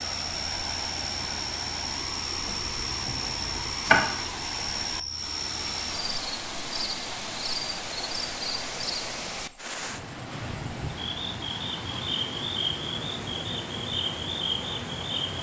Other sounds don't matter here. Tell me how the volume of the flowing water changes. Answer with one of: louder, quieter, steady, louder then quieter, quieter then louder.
steady.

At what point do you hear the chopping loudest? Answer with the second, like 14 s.
4 s.